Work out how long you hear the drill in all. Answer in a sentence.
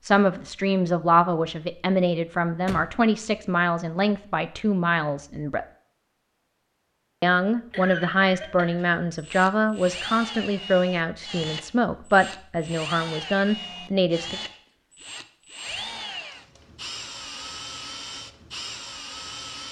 The drill can be heard for 11 seconds in total.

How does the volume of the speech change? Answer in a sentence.
The volume of the speech stays about the same.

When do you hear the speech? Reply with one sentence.
The speech can be heard from 0.0 to 5.7 s and from 7.2 to 14.4 s.